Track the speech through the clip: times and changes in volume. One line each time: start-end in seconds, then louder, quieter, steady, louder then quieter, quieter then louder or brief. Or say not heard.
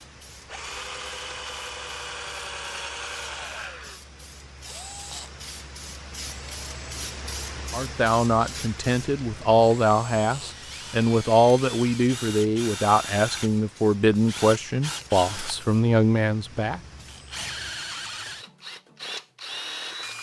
7.7-16.8 steady.